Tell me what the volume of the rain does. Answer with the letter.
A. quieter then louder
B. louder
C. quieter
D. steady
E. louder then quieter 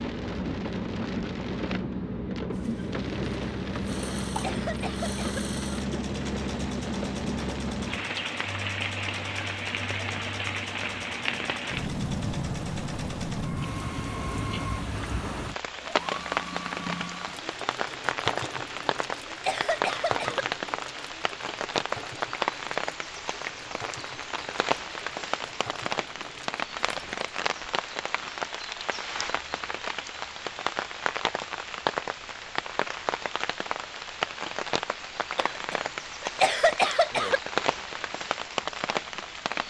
D.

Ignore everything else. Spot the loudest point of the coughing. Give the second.
37 s.